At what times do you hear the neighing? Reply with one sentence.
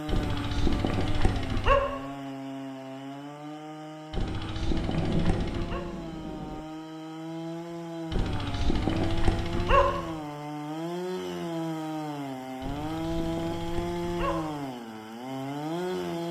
You can't hear the neighing here.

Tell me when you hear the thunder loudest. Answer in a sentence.
The volume of the thunder peaks at 5 seconds.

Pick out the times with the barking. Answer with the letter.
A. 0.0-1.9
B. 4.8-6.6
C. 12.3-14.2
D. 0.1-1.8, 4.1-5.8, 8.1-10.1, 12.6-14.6
D.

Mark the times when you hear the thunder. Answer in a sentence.
You can hear the thunder from 4.8 to 6.6 s.